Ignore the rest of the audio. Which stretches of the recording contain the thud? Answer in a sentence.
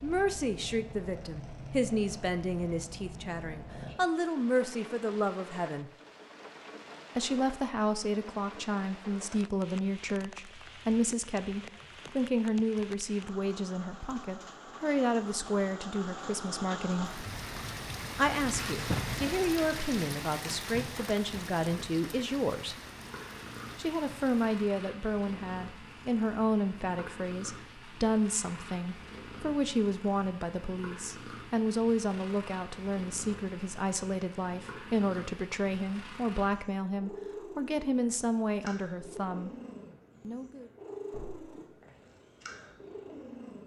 You can hear the thud from 41.1 to 41.5 s.